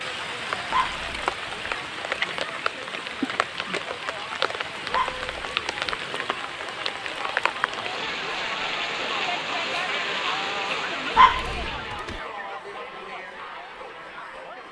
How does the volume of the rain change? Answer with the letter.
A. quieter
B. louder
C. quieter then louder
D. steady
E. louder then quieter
D.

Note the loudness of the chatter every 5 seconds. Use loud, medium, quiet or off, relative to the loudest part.
medium, loud, loud.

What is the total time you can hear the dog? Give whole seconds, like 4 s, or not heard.
3 s.